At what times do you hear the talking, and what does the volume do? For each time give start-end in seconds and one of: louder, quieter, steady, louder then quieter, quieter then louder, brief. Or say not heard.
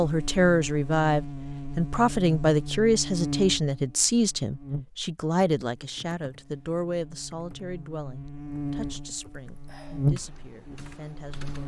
0.0-11.6 quieter.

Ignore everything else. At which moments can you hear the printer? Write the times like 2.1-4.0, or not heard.
not heard.